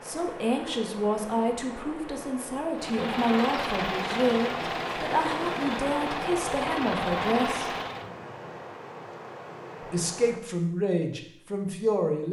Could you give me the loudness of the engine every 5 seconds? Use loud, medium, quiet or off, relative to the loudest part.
loud, loud, off.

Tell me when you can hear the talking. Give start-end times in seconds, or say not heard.
0.1-7.8, 9.9-12.2.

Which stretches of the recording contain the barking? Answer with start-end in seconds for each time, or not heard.
not heard.